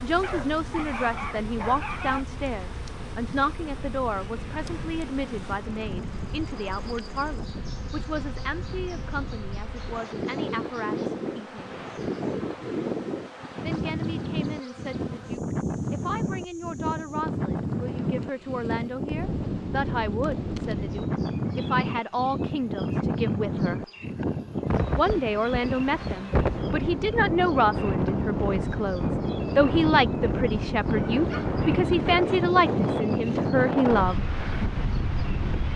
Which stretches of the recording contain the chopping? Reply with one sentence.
The chopping can't be heard in this clip.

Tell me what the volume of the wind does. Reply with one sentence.
The loudness of the wind goes up.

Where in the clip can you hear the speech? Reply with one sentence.
You can hear the speech from 0.0 to 11.8 s, from 13.6 to 23.9 s and from 24.9 to 34.2 s.